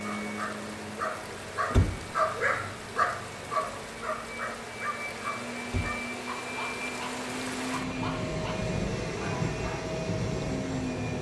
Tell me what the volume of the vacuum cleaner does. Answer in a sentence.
The loudness of the vacuum cleaner goes up.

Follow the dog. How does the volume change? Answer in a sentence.
The loudness of the dog goes down.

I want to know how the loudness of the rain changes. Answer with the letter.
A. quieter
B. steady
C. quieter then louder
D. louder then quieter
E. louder
E.